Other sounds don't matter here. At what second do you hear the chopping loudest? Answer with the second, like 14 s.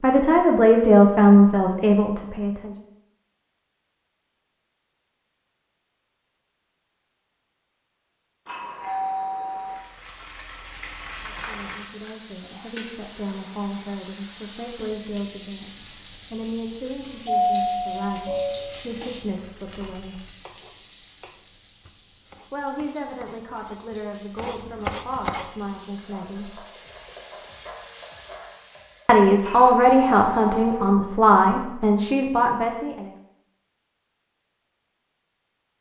25 s.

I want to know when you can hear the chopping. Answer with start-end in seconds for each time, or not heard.
19.8-25.4.